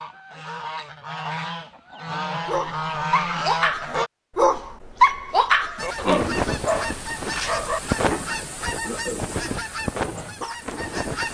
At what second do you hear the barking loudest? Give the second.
5 s.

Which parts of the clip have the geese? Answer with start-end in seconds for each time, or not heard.
0.0-4.1, 5.8-11.2.